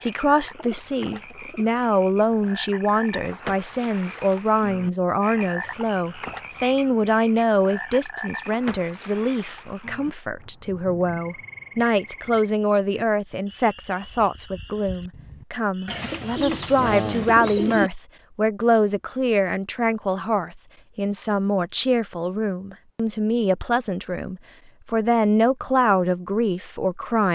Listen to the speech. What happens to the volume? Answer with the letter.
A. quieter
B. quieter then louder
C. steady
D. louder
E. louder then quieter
C.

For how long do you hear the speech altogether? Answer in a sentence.
The speech can be heard for 27 seconds in total.